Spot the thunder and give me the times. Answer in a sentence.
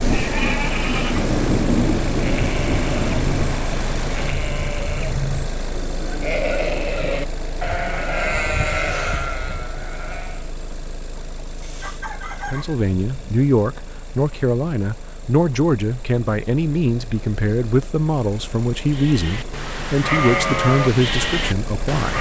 You can hear the thunder from 0.0 to 4.3 s.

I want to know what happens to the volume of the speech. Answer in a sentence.
The volume of the speech stays about the same.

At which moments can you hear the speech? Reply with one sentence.
The speech can be heard from 12.4 to 22.1 s.